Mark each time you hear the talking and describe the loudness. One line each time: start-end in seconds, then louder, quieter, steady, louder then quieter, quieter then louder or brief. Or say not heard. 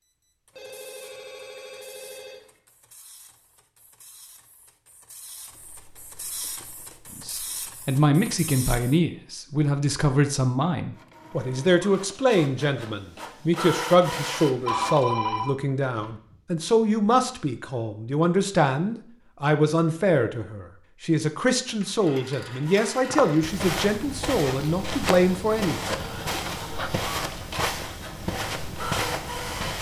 7.2-26.2 steady.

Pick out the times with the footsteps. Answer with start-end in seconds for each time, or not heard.
23.1-29.7.